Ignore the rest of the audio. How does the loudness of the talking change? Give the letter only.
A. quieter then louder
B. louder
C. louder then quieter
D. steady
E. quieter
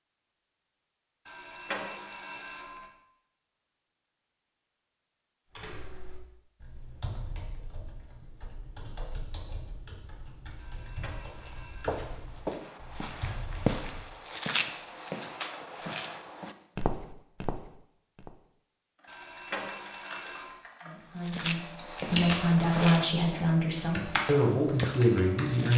B.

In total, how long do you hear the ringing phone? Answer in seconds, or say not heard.
5 s.